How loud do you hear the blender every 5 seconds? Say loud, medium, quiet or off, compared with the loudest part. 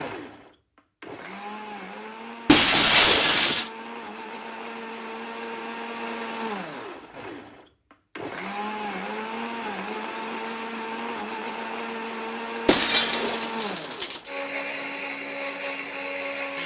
medium, loud, loud, loud.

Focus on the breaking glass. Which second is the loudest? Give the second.
3 s.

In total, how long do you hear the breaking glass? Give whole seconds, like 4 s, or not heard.
3 s.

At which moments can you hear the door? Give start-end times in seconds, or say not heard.
not heard.